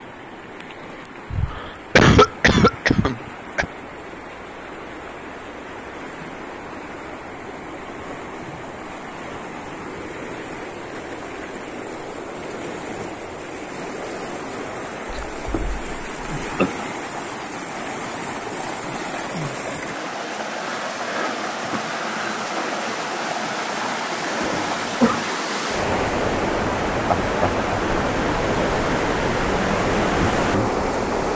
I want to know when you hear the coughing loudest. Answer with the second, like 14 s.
2 s.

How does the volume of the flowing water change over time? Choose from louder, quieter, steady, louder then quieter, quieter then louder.
louder.